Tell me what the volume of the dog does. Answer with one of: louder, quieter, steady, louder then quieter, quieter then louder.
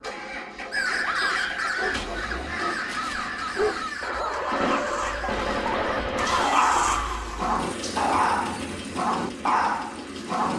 louder.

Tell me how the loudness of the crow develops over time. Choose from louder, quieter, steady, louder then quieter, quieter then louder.
quieter.